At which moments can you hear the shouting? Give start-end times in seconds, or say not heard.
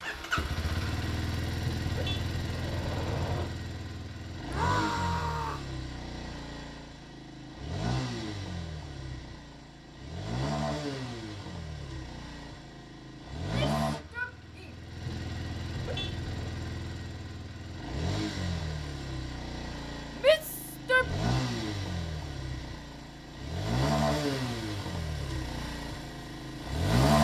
4.5-5.7, 13.3-14.8, 20.2-21.1.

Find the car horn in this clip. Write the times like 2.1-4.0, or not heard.
1.8-3.5, 15.7-16.6.